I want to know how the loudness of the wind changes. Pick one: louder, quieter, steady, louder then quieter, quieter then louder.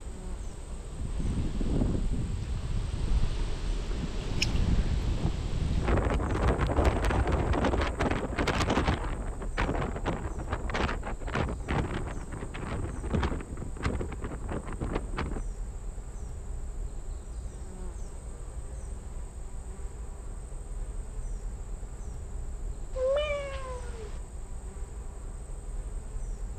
louder then quieter.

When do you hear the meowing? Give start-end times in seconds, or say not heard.
22.9-24.1.